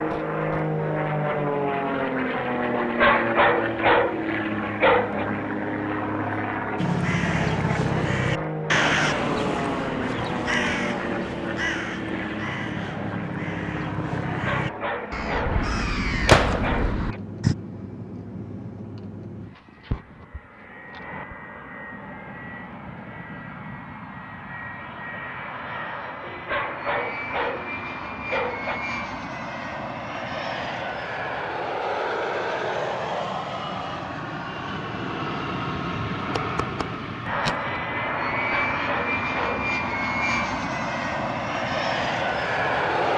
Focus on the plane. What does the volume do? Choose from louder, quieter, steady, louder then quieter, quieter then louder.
quieter then louder.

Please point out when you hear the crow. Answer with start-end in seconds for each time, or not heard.
6.8-17.6.